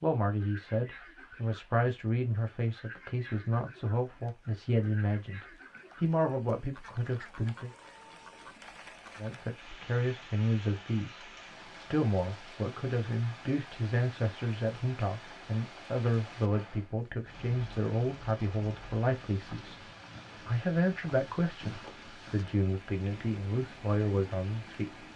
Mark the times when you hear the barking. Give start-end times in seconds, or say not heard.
not heard.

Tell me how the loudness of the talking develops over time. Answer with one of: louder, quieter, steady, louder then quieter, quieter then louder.
steady.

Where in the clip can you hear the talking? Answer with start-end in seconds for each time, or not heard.
0.0-7.7, 9.2-19.8, 20.4-25.1.